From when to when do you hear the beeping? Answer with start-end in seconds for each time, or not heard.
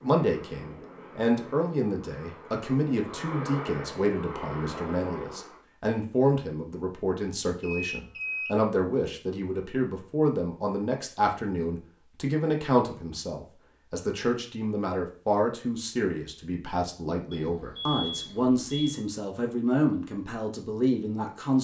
7.6-8.5, 17.3-18.9.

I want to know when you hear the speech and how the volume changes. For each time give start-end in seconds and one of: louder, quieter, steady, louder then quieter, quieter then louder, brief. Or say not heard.
0.0-21.5 steady.